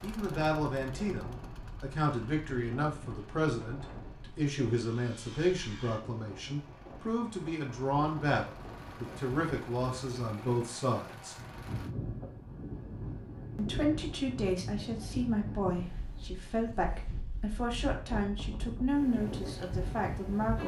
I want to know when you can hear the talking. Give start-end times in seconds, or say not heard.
0.0-11.3, 13.6-20.6.